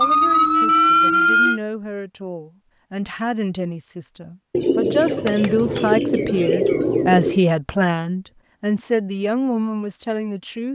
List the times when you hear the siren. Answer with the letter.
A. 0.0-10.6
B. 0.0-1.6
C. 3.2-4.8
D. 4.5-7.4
B.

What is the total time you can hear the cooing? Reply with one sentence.
You can hear the cooing for 3 seconds altogether.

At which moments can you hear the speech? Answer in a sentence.
The speech can be heard from 0.0 to 10.6 s.